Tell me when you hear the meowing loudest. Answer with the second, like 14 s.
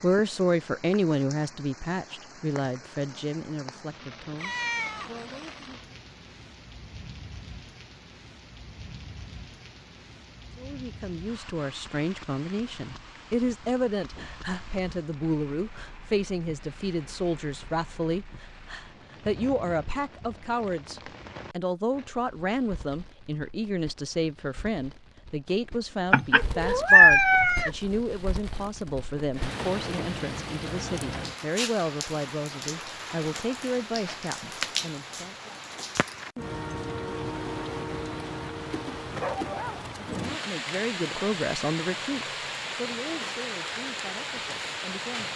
27 s.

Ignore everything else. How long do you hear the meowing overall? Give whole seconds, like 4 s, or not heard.
3 s.